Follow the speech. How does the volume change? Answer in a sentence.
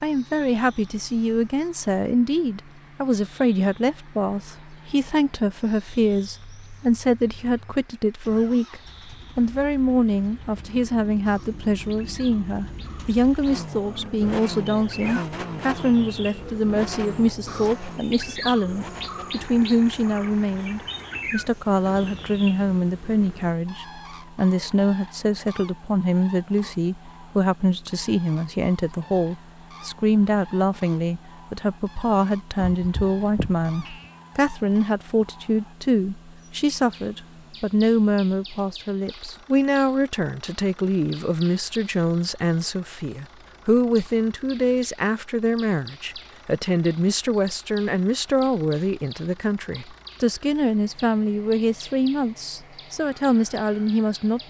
The loudness of the speech stays about the same.